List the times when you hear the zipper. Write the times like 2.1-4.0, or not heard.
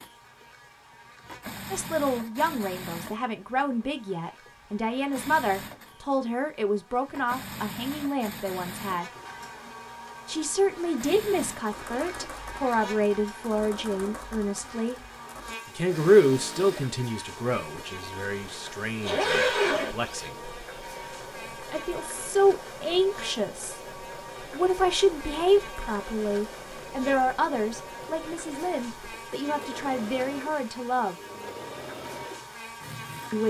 19.0-20.3.